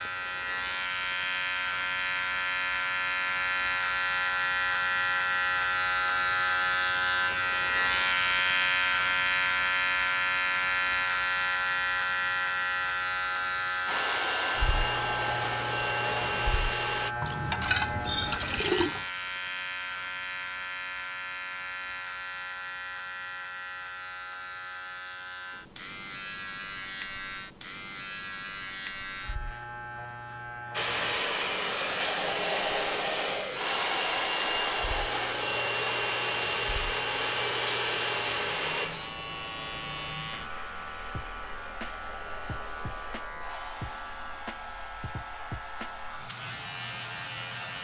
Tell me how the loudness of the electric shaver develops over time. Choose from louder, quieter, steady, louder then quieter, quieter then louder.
quieter.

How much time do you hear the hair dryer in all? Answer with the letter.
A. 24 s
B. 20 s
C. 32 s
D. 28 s
B.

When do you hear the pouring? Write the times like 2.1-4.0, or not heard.
17.2-19.1.